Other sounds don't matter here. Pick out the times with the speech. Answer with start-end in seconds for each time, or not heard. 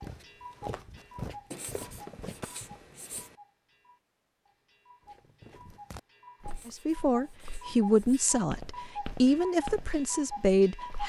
6.7-11.0.